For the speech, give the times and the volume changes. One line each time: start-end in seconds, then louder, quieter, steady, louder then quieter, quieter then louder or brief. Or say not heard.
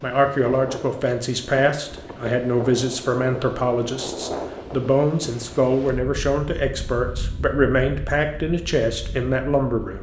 0.0-9.9 steady.